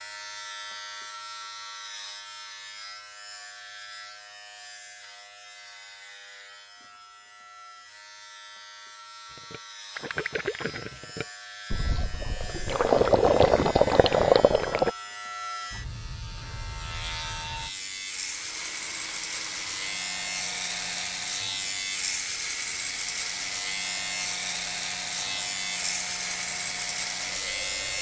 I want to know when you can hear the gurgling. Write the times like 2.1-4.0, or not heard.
9.3-14.9.